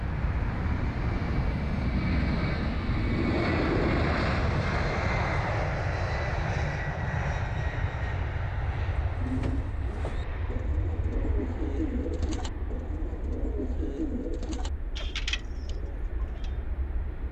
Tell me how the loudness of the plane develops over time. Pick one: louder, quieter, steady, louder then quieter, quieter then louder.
quieter.